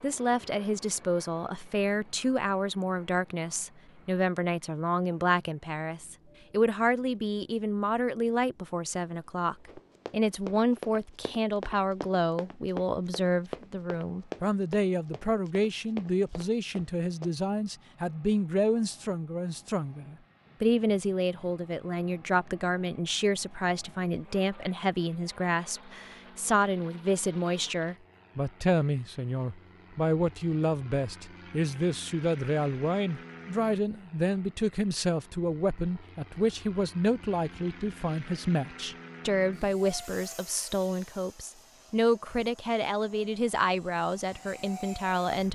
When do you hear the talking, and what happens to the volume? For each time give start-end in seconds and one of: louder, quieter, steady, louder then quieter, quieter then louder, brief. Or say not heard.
0.0-45.4 steady.